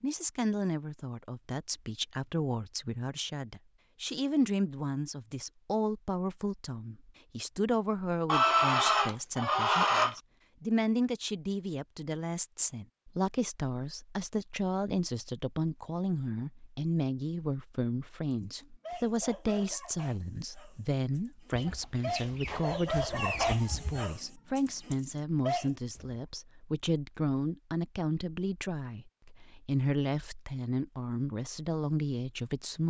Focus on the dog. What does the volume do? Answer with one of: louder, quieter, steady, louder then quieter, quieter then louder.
quieter then louder.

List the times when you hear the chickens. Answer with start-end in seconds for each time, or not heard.
8.2-10.2, 21.5-24.1.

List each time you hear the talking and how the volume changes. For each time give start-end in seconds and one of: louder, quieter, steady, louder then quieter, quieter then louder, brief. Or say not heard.
0.0-32.8 steady.